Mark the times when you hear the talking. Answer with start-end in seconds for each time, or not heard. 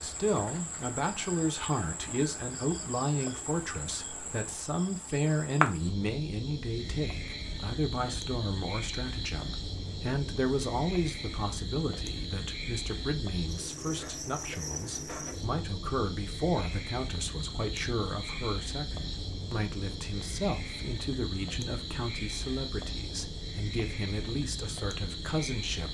0.0-25.9.